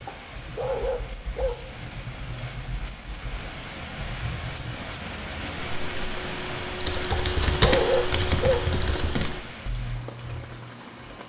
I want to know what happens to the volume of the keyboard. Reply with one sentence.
The volume of the keyboard goes up, then down.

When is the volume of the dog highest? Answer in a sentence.
The loudest moment of the dog is at 8 seconds.